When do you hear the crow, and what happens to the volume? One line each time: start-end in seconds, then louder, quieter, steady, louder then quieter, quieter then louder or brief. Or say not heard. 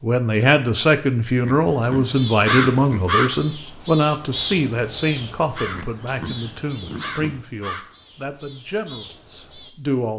2.1-9.7 quieter.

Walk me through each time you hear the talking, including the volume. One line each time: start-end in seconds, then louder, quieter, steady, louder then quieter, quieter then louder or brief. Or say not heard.
0.0-10.1 quieter.